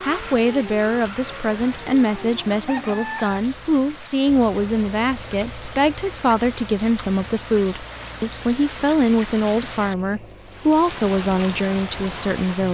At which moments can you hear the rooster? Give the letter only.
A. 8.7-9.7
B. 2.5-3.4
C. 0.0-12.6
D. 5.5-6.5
B.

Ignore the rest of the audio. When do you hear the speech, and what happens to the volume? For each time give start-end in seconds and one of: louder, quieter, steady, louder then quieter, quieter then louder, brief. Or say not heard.
0.0-12.6 steady.